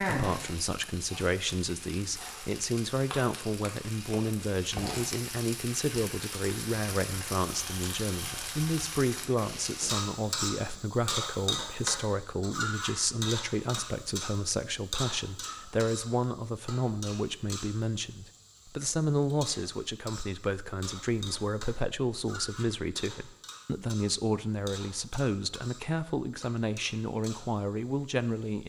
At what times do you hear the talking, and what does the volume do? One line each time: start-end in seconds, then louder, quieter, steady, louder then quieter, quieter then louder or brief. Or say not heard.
0.0-28.6 steady.